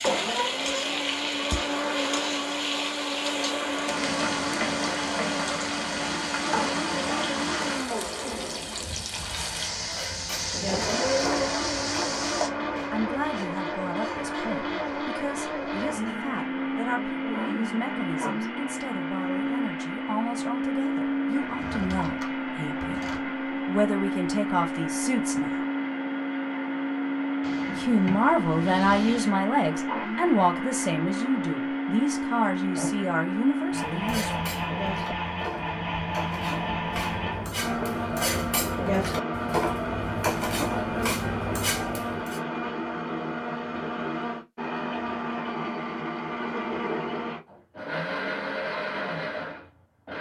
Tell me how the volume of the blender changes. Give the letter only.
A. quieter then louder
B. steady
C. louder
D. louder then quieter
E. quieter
B.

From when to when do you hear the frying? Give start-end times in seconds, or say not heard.
0.0-12.5.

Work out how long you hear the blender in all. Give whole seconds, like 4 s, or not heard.
50 s.